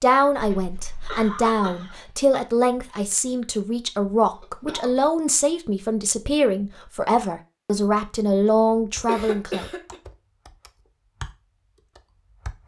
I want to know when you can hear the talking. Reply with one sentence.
The talking can be heard from 0.0 to 9.7 s.